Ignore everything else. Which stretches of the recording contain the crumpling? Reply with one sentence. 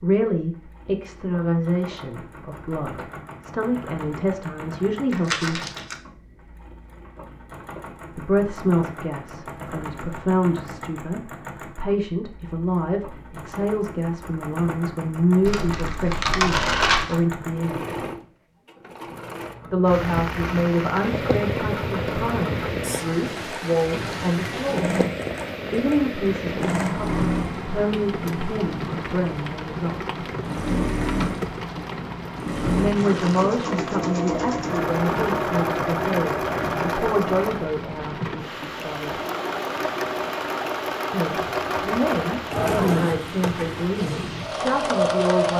You can hear the crumpling from 5.1 to 6.0 s, from 15.4 to 17.2 s and from 33.0 to 33.7 s.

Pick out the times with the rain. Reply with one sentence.
The rain can be heard from 19.9 to 45.5 s.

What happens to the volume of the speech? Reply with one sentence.
The loudness of the speech stays about the same.